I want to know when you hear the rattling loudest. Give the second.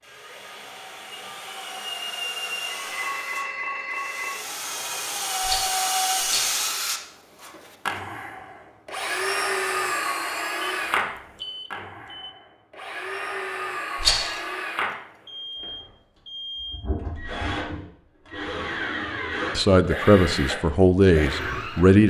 14 s.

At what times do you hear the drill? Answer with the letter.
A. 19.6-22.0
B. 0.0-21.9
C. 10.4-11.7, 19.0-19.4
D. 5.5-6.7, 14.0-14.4
B.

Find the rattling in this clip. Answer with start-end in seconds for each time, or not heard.
5.5-6.7, 14.0-14.4.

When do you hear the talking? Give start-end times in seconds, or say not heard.
19.6-22.0.